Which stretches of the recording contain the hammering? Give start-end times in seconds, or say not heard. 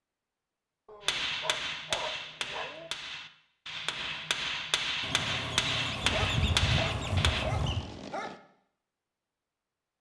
1.0-7.5.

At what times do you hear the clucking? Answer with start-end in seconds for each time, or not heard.
5.0-7.8.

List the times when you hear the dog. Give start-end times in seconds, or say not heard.
0.8-2.9, 6.0-8.4.